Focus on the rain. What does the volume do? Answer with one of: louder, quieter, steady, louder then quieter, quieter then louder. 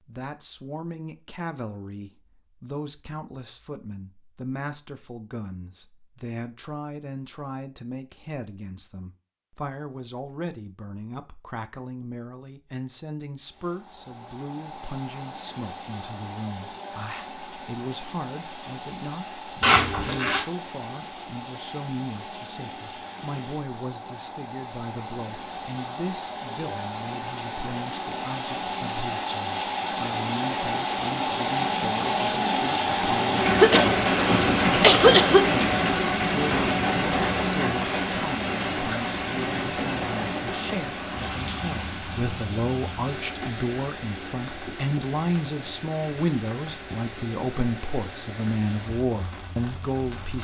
louder then quieter.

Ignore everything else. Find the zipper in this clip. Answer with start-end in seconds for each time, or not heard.
19.6-20.4.